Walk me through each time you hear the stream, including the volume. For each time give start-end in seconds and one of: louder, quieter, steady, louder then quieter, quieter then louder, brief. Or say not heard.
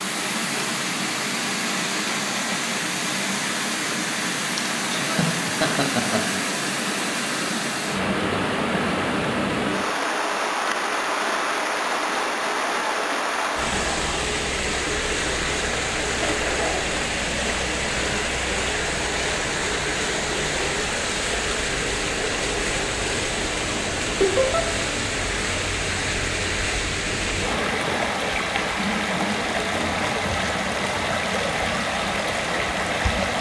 0.0-33.3 steady.